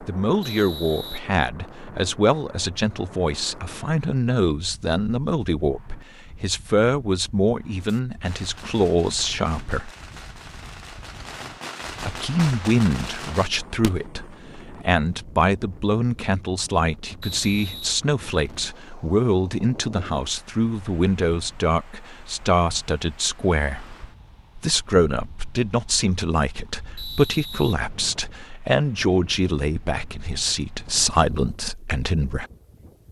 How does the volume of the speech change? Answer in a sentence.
The volume of the speech stays about the same.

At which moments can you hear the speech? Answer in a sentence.
The speech can be heard from 0.0 to 9.9 s, from 12.0 to 23.9 s and from 24.6 to 32.5 s.